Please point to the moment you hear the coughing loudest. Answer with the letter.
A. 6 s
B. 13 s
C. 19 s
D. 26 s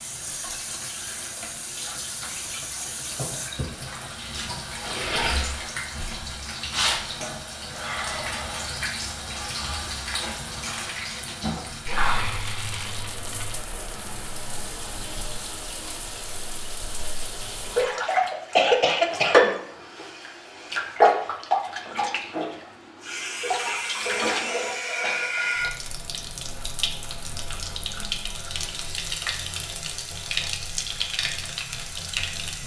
C.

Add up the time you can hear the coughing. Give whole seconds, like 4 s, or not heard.
2 s.